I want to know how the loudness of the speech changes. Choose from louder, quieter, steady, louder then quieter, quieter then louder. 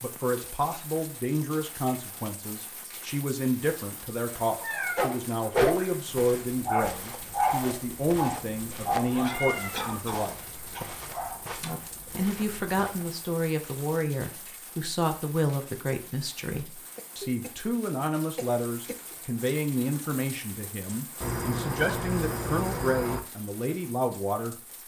steady.